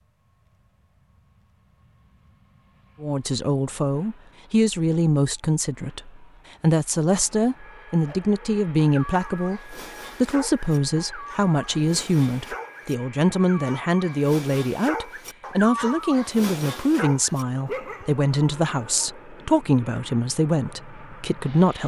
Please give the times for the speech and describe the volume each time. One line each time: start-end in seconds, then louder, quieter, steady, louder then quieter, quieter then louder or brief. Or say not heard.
3.0-21.8 steady.